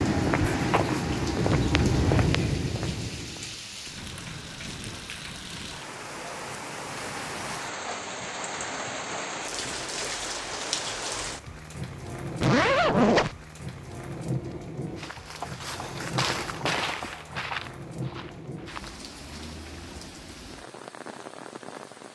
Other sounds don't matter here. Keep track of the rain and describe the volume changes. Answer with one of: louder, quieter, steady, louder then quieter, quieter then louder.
louder then quieter.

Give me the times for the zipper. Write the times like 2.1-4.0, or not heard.
12.4-13.3.